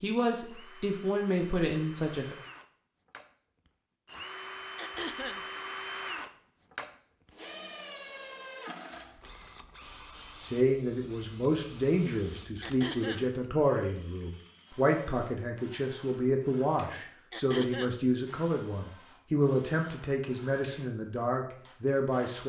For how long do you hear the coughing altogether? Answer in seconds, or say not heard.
2 s.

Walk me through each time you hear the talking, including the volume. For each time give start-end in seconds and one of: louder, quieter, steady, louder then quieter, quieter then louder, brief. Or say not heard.
0.0-2.4 brief
10.4-22.4 steady.